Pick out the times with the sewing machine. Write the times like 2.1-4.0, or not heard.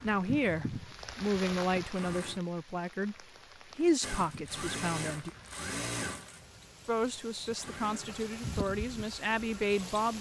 0.0-2.4, 4.0-10.1.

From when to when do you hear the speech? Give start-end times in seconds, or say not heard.
0.0-5.3, 6.8-10.1.